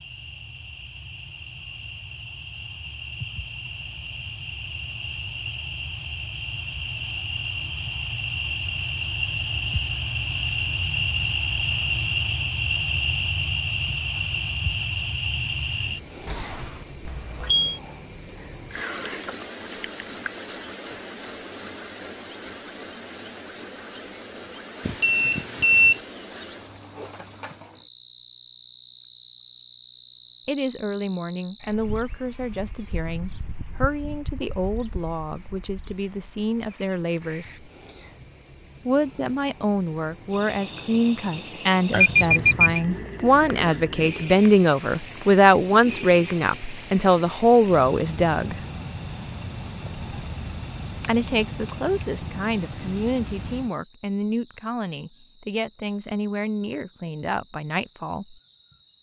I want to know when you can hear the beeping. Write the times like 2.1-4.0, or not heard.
16.2-17.8, 24.9-26.0, 41.9-42.8.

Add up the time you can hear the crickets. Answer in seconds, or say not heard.
59 s.